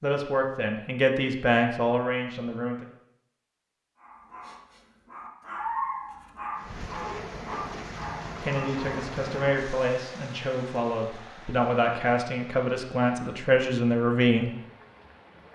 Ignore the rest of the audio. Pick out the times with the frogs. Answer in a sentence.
The frogs can't be heard in this clip.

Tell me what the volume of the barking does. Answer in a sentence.
The volume of the barking goes up, then down.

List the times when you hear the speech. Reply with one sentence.
You can hear the speech from 0.0 to 2.9 s and from 8.4 to 14.5 s.